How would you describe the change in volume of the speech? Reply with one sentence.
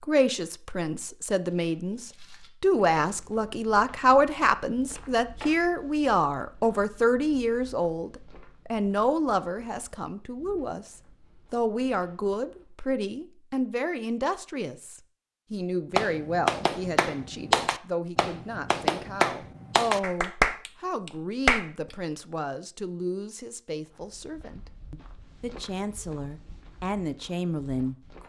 The loudness of the speech goes down.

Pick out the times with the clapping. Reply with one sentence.
The clapping can be heard from 15.9 to 21.6 s.